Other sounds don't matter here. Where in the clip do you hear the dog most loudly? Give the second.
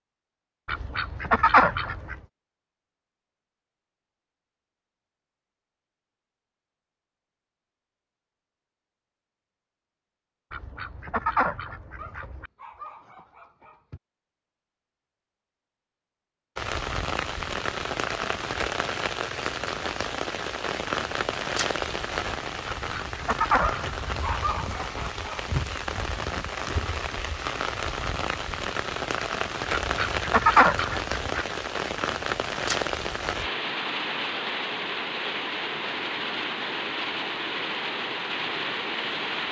24 s.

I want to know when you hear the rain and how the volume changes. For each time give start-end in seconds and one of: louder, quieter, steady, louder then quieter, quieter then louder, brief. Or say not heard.
16.6-39.4 steady.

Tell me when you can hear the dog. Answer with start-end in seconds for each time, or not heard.
11.9-14.0, 23.6-25.6.